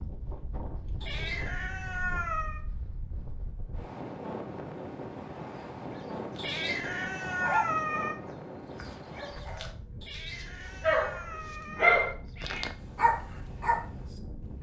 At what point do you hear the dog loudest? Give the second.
12 s.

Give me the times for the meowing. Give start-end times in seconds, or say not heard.
1.0-2.6, 6.3-8.2, 10.1-12.8.